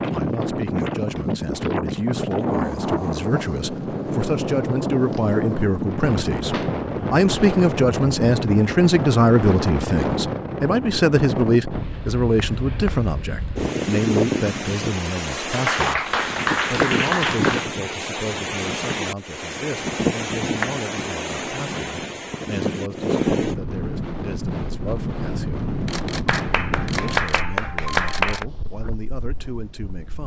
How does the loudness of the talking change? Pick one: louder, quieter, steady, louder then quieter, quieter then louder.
louder then quieter.